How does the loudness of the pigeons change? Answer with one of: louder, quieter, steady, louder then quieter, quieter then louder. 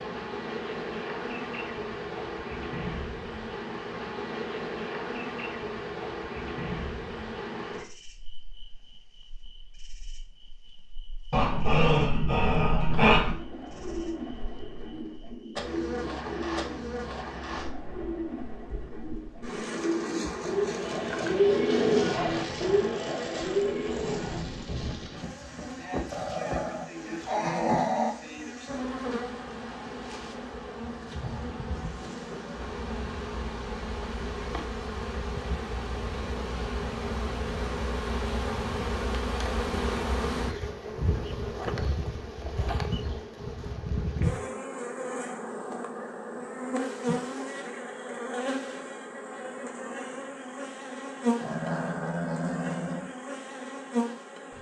louder.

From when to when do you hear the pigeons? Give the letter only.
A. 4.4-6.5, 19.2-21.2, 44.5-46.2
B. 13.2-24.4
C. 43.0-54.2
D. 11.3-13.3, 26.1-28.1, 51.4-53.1
B.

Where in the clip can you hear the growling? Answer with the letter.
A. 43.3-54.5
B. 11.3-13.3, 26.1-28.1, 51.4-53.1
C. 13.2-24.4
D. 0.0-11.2
B.